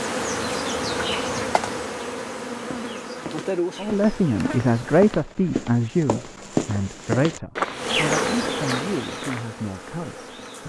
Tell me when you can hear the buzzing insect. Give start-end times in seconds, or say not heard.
0.0-5.2, 7.8-10.6.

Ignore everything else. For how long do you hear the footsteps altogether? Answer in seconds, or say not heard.
7 s.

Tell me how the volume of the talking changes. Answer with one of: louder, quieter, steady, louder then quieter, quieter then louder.
quieter.